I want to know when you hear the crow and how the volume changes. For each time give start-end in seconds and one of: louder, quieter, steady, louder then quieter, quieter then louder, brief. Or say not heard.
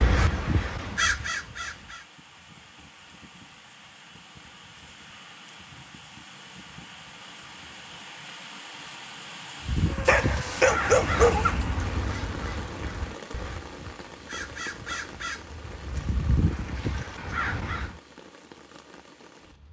0.0-2.0 brief
9.7-17.9 quieter then louder.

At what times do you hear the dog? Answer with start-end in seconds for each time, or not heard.
10.1-11.5.